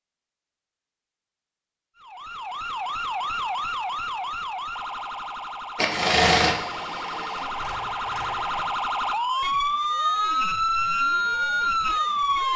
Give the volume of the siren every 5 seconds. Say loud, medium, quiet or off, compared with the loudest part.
medium, medium, loud.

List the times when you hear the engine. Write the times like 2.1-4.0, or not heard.
5.8-8.7.